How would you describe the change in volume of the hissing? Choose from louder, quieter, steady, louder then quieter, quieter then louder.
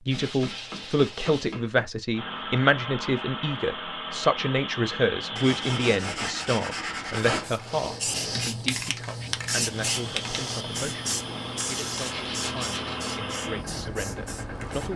quieter.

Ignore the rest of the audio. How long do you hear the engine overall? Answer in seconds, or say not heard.
9 s.